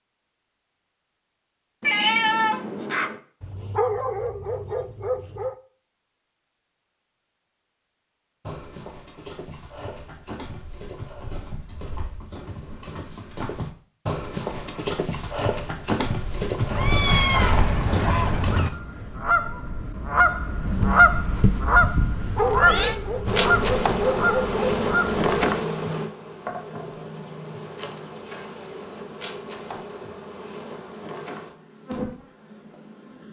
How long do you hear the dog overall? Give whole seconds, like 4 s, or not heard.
5 s.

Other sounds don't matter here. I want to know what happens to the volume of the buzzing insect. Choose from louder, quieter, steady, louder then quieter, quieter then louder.
quieter.